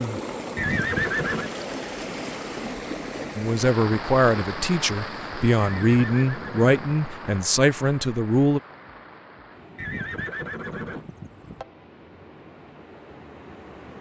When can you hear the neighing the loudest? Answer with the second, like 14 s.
1 s.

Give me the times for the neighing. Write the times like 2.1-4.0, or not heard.
0.6-1.5, 5.5-7.3, 9.8-11.7.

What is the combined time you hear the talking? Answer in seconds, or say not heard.
5 s.